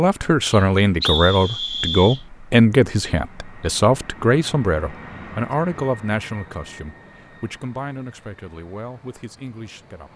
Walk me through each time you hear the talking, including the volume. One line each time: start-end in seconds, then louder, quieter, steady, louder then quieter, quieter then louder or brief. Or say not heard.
0.0-10.1 quieter.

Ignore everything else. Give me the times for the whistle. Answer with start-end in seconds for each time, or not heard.
0.4-2.2.